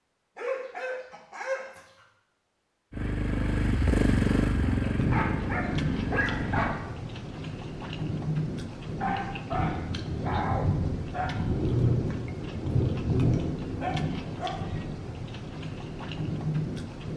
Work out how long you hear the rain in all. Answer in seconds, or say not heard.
12 s.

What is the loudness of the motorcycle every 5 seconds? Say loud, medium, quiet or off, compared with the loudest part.
loud, medium, off, off.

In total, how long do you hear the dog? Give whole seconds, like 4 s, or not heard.
8 s.